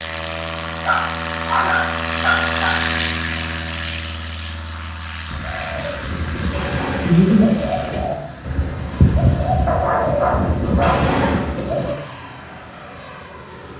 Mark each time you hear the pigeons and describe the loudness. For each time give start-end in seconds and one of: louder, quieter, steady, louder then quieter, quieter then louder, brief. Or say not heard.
5.2-11.9 louder.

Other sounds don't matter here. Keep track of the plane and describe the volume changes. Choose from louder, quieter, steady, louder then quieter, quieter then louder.
quieter.